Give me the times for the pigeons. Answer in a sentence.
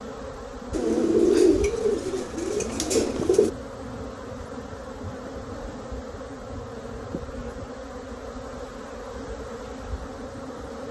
You can hear the pigeons from 0.7 to 3.5 s.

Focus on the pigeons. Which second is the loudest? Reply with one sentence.
The loudest moment of the pigeons is at 1 second.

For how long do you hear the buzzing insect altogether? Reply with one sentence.
You can hear the buzzing insect for 11 seconds altogether.